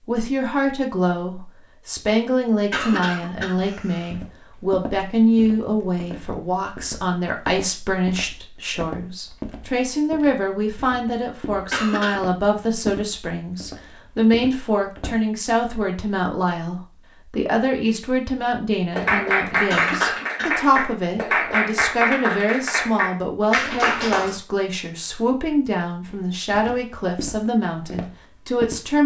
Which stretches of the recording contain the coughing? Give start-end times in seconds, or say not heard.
2.7-4.1, 11.7-12.2, 19.7-20.6.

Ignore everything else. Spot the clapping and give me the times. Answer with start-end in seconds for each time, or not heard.
18.9-24.4.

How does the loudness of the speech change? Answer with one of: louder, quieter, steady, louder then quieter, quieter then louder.
steady.